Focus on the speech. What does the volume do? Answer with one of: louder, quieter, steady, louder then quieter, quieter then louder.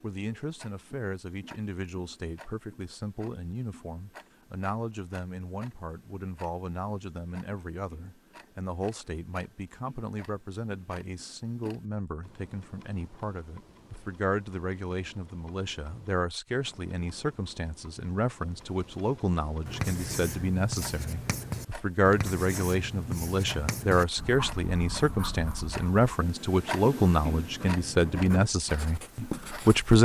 louder.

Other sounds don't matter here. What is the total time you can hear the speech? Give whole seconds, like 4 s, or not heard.
30 s.